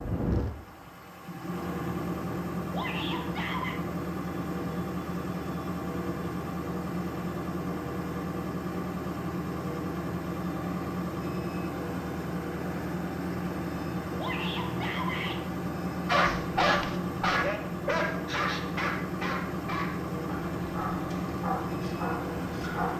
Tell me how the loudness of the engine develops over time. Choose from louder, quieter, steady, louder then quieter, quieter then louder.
steady.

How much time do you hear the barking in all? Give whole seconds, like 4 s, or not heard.
7 s.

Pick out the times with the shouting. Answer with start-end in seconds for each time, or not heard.
2.7-3.8, 14.2-15.4.